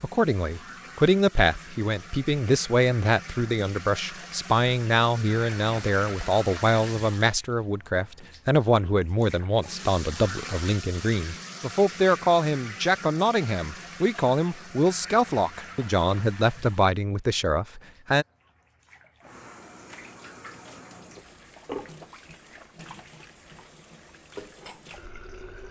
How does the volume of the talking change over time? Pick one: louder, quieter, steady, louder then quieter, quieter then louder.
steady.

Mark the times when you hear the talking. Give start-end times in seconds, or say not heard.
0.0-18.2.